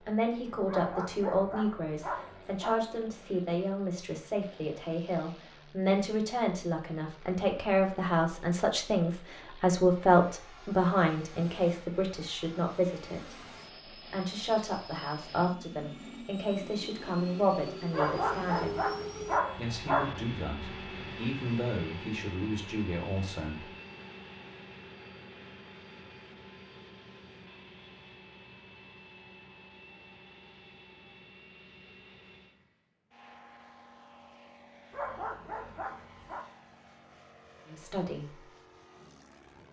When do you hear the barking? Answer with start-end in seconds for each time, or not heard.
0.7-2.8, 17.9-20.2, 34.9-36.5.